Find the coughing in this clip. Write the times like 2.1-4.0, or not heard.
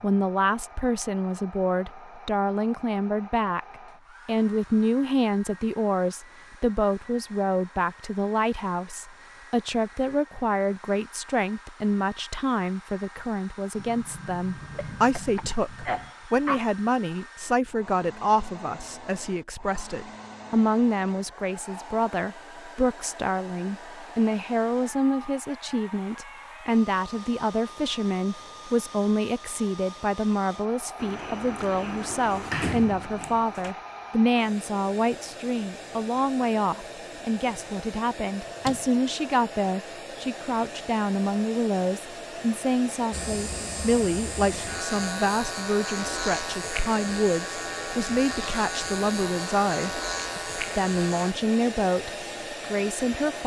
14.8-16.7.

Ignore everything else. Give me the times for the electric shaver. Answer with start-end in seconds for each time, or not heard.
43.1-51.4.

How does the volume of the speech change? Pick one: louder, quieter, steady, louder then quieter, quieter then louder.
steady.